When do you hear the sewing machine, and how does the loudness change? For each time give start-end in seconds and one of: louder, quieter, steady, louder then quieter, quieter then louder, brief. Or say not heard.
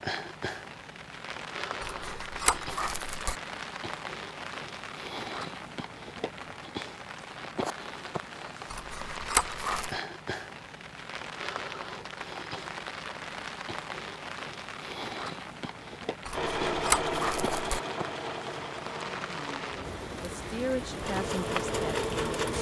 16.3-22.5 quieter then louder.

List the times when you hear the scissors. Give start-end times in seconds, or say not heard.
1.8-3.4, 8.7-9.9, 16.2-17.8.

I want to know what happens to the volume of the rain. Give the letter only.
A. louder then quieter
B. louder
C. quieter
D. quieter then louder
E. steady
E.